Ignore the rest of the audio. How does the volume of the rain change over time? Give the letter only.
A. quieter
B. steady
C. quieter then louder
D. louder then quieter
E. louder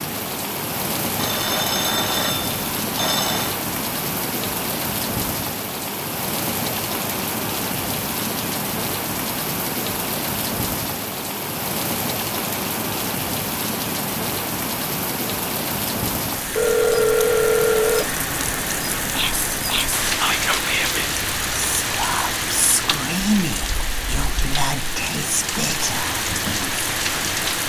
B.